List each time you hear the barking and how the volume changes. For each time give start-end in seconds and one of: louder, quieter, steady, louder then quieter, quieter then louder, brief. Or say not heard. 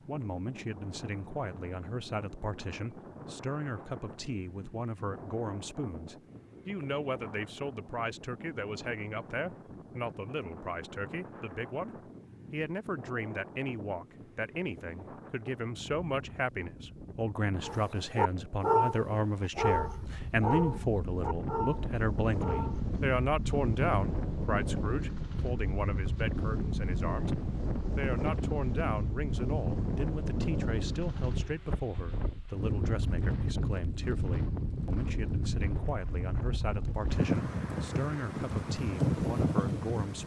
17.6-22.9 quieter.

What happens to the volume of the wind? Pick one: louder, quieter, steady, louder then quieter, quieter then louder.
louder.